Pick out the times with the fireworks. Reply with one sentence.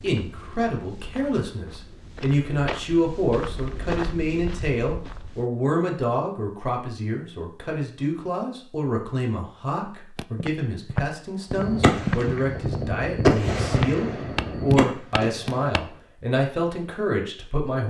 The fireworks can be heard from 11.5 to 15.8 s.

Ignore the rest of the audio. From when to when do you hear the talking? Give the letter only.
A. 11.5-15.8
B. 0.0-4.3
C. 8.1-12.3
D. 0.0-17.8
D.